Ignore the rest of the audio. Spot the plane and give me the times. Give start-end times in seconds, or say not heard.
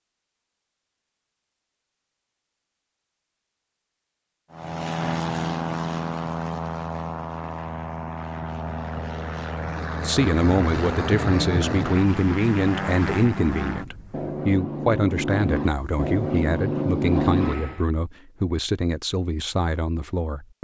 4.5-17.9.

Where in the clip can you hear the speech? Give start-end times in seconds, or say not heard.
10.0-20.5.